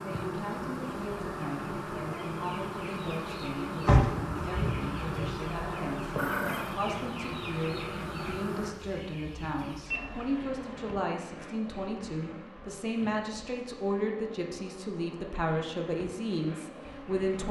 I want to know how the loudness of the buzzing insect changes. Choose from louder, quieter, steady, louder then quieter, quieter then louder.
quieter.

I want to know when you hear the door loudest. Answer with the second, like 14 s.
4 s.